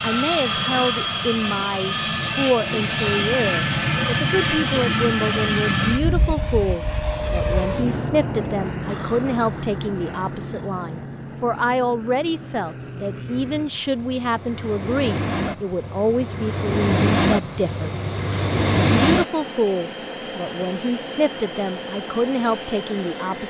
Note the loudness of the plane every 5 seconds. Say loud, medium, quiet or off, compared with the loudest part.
loud, medium, quiet, loud, loud.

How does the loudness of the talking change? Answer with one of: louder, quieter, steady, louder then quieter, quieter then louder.
steady.